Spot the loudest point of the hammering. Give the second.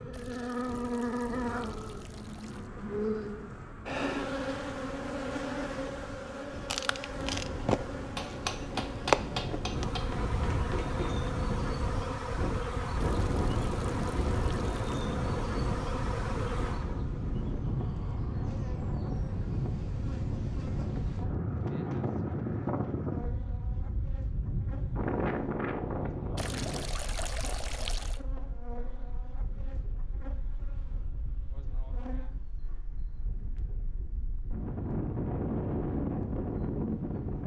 9 s.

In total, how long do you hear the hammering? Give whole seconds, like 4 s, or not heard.
3 s.